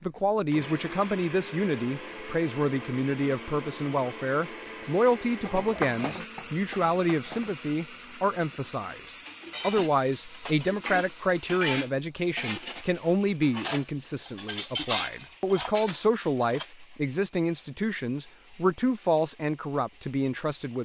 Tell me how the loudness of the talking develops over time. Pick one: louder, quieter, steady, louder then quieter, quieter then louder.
steady.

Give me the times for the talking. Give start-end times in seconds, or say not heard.
0.0-20.8.